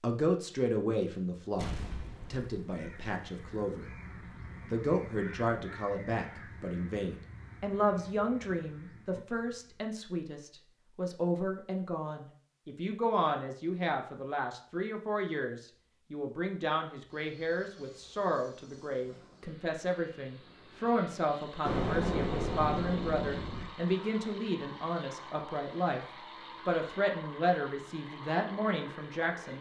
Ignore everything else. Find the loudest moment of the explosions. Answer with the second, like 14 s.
22 s.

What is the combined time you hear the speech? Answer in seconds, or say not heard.
28 s.